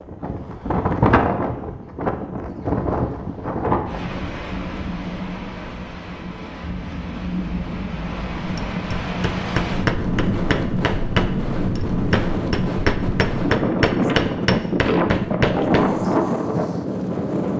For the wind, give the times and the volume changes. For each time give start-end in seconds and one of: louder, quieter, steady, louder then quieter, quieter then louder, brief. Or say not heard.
0.0-17.5 quieter then louder.